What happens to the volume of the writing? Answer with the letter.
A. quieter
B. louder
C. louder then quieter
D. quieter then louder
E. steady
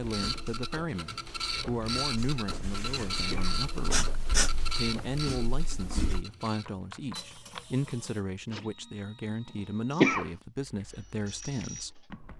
C.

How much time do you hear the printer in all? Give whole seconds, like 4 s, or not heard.
12 s.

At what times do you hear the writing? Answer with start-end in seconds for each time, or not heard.
0.0-6.2.